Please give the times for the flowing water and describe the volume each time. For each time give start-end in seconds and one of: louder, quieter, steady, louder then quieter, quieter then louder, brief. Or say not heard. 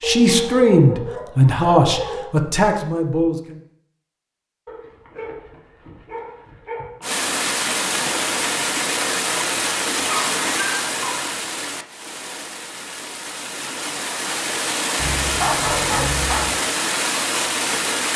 7.0-18.1 quieter then louder.